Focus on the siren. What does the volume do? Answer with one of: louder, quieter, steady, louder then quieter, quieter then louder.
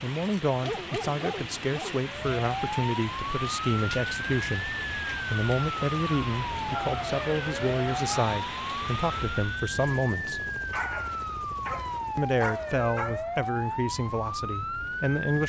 steady.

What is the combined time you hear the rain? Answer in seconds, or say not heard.
10 s.